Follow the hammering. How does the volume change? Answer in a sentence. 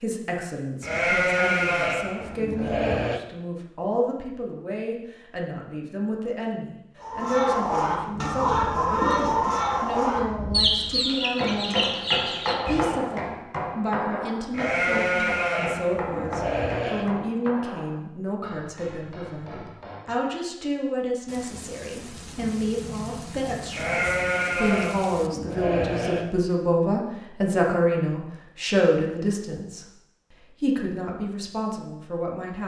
The loudness of the hammering goes down.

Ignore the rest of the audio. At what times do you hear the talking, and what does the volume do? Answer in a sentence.
You can hear the talking from 0.0 to 32.6 s, getting louder.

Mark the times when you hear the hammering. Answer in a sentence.
The hammering can be heard from 11.2 to 20.2 s.